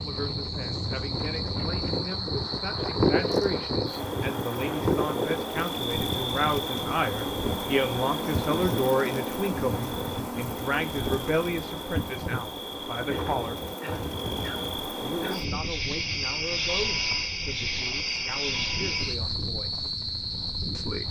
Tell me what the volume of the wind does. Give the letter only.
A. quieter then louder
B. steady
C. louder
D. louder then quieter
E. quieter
E.